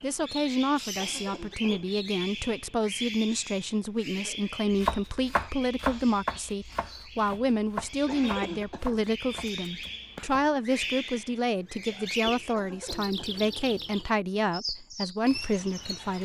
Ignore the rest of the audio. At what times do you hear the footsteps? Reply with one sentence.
You can't hear the footsteps here.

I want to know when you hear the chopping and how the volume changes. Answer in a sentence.
You can hear the chopping from 4.7 to 10.6 s, getting quieter.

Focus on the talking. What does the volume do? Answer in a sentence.
The loudness of the talking stays about the same.